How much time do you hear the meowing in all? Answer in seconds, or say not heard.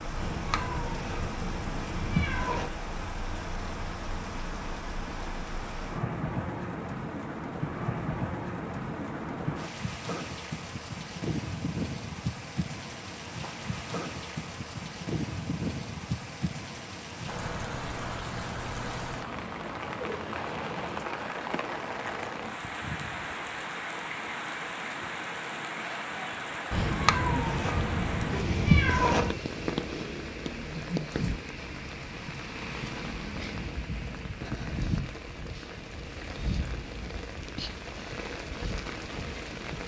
5 s.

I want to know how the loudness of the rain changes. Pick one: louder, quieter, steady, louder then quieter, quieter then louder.
steady.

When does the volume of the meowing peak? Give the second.
29 s.